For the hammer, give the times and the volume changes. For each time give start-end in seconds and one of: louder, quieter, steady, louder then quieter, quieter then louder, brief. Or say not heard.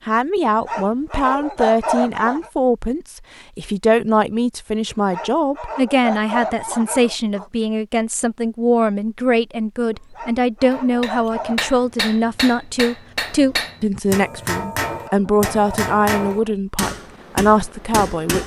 10.7-18.4 steady.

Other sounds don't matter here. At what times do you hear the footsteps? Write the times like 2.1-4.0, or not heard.
not heard.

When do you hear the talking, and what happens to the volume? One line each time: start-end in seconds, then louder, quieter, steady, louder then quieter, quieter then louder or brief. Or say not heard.
0.1-18.4 steady.